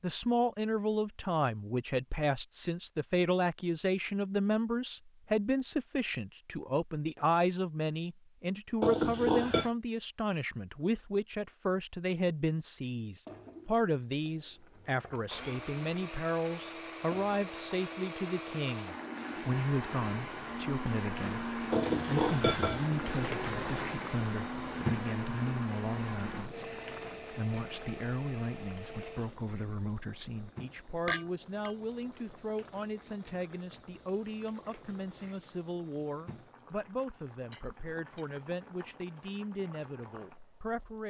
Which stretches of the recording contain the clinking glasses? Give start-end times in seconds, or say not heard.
8.8-9.7, 21.7-22.9, 31.1-31.7.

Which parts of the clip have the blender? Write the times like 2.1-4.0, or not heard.
15.0-29.4.